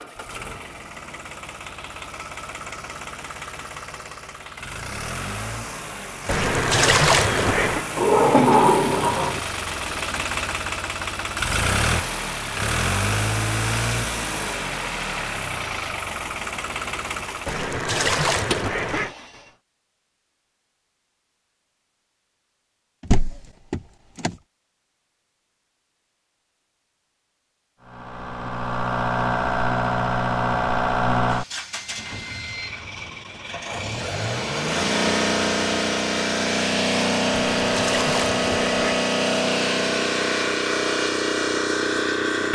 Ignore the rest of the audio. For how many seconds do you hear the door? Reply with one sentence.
The door can be heard for 3 seconds in total.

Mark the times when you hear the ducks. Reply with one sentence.
The ducks can be heard from 6.2 to 7.8 s, from 17.4 to 19.1 s and from 37.5 to 39.0 s.